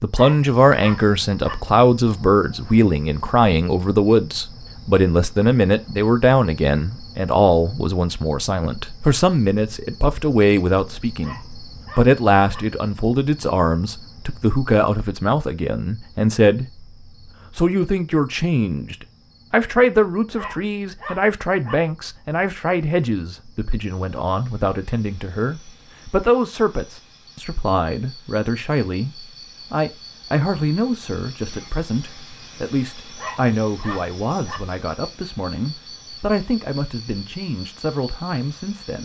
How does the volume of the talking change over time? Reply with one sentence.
The loudness of the talking goes down.